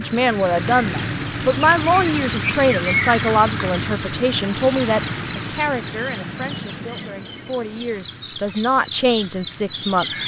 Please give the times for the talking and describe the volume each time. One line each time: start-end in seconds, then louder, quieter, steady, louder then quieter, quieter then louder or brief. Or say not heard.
0.0-10.2 quieter then louder.